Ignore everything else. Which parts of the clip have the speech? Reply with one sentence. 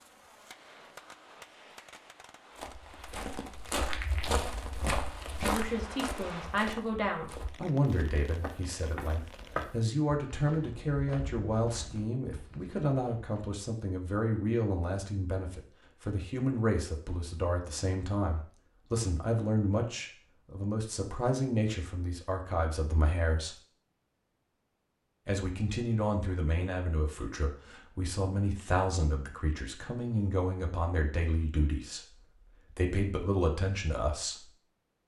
The speech can be heard from 5.3 to 23.6 s and from 25.2 to 34.5 s.